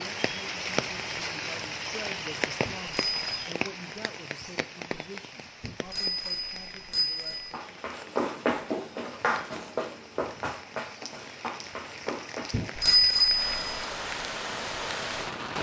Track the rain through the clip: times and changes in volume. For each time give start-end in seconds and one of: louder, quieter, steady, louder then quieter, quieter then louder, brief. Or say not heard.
0.0-15.5 quieter then louder.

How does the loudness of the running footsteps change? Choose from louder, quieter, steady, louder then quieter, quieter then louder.
quieter.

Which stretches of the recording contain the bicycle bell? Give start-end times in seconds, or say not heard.
2.6-3.2, 5.6-7.5, 12.5-13.8.